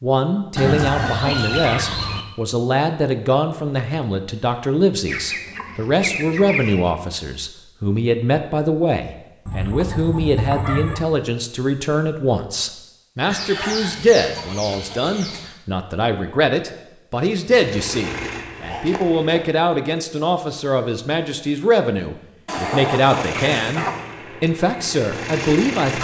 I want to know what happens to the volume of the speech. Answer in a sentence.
The loudness of the speech stays about the same.